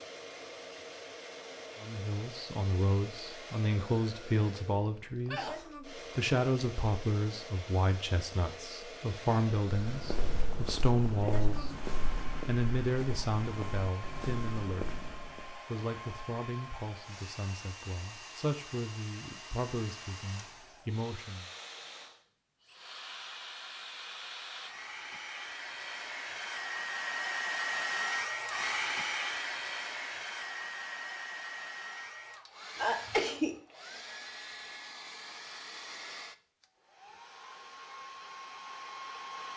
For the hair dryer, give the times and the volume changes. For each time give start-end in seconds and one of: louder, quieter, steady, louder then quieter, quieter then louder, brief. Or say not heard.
0.0-39.5 louder then quieter.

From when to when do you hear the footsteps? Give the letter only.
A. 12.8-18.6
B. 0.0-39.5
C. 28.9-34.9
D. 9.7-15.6
D.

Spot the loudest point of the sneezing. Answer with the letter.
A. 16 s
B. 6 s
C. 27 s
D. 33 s
D.